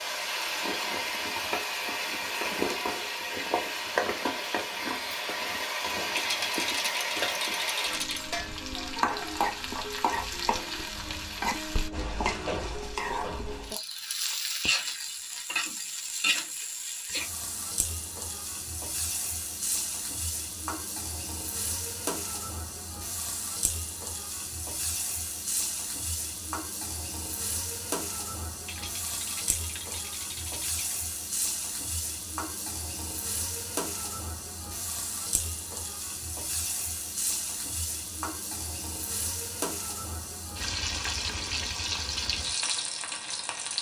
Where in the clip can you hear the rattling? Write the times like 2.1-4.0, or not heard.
6.1-8.3, 28.6-30.9.